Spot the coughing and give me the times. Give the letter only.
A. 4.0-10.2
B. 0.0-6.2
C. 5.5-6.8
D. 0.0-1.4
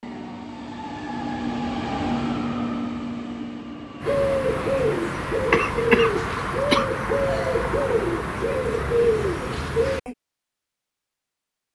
C.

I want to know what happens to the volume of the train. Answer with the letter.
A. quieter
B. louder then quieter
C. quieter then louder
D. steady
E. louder
B.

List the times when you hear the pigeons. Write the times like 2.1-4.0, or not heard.
4.0-10.2.